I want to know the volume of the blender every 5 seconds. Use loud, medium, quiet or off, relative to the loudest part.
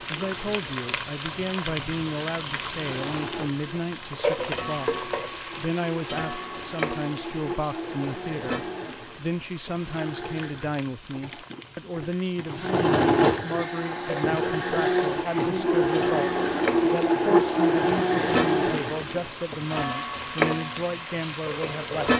quiet, quiet, loud, loud, off.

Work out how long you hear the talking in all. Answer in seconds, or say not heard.
22 s.